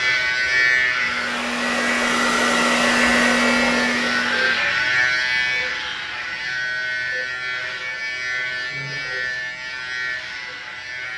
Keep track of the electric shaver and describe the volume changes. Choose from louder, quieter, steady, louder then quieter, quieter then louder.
quieter.